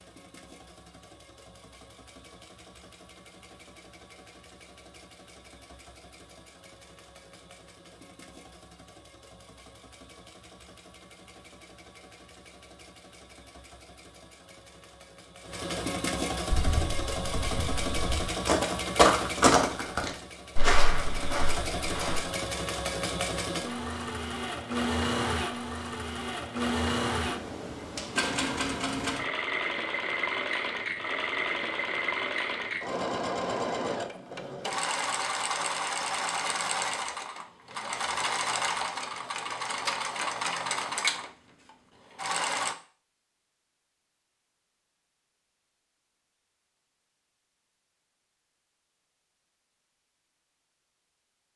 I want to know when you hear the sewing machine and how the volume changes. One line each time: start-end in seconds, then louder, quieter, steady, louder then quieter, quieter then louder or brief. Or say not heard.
0.0-42.8 louder.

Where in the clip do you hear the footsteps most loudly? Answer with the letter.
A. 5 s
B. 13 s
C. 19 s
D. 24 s
C.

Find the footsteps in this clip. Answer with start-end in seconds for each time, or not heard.
16.5-22.2.